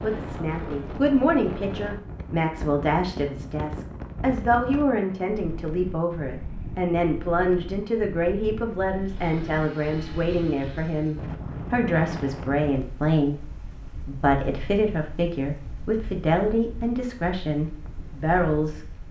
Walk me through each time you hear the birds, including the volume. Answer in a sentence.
The birds can't be heard in this clip.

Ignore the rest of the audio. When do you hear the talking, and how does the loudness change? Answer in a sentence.
The talking can be heard from 0.0 to 18.9 s, at a steady volume.